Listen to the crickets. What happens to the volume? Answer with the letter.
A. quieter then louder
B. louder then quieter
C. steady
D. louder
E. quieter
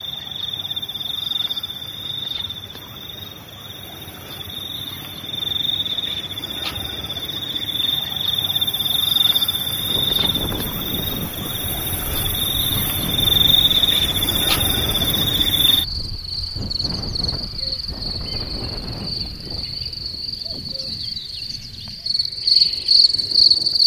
D.